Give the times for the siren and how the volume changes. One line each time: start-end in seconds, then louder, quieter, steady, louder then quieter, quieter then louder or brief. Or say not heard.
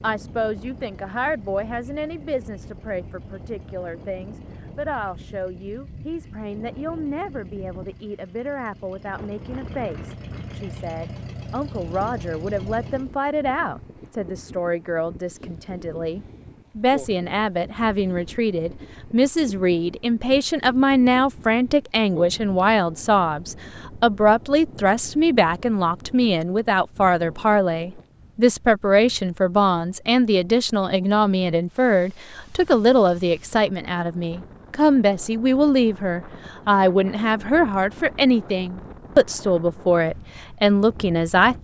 not heard.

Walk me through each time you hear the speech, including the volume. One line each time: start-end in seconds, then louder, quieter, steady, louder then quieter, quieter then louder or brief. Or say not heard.
0.0-41.5 louder.